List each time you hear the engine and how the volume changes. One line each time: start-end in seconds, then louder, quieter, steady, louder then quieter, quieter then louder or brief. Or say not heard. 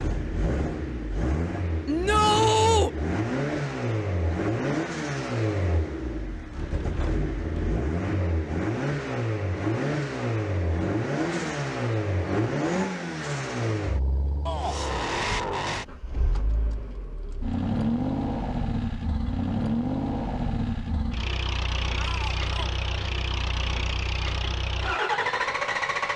0.0-26.1 steady.